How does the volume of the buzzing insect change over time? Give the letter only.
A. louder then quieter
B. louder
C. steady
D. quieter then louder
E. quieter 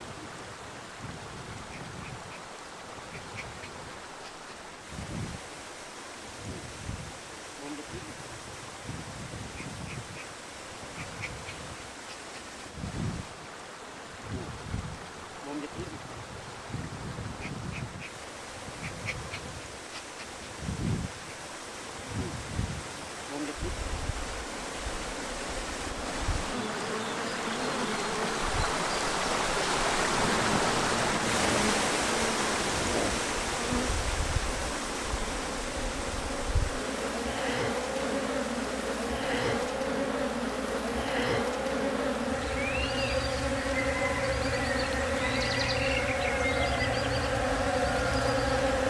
B.